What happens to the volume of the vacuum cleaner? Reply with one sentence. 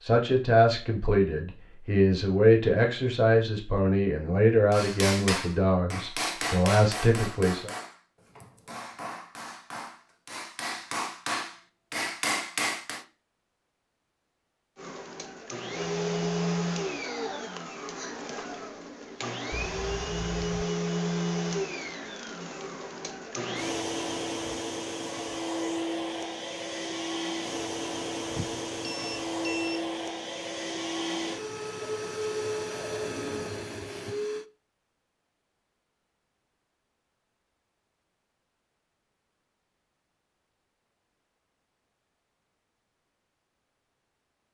The volume of the vacuum cleaner stays about the same.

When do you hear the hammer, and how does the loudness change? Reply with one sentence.
The hammer can be heard from 4.7 to 13.1 s, getting quieter then louder.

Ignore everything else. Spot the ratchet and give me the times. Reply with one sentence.
You can't hear the ratchet here.